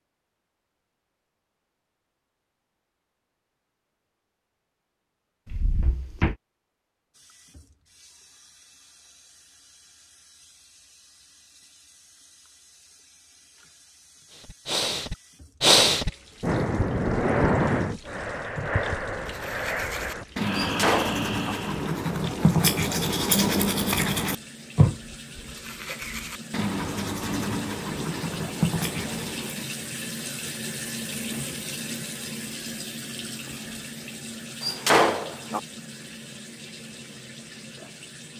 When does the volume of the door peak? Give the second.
35 s.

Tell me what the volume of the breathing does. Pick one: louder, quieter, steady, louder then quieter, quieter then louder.
quieter.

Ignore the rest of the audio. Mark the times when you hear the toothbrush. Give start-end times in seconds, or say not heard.
18.6-29.7.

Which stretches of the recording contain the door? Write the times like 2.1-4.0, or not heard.
5.5-6.3, 20.6-21.6, 34.6-35.6.